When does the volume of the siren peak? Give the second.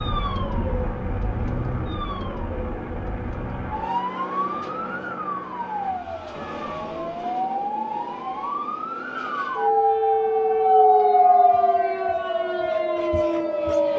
11 s.